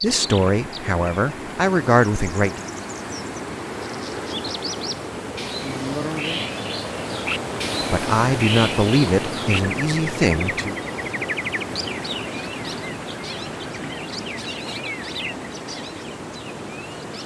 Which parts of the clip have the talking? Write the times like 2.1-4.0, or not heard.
0.0-2.6, 7.9-10.8.